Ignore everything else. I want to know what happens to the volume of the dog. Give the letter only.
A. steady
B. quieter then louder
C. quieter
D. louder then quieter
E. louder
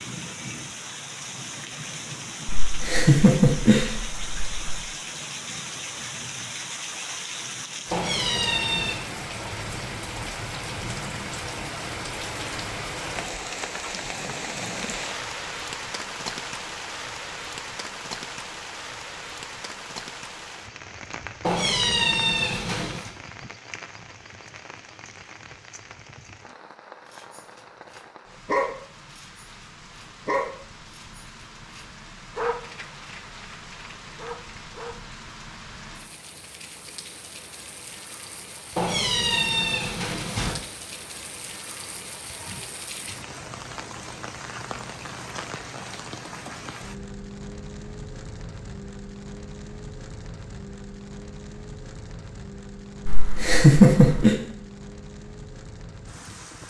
C.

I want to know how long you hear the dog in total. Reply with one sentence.
You can hear the dog for 8 seconds altogether.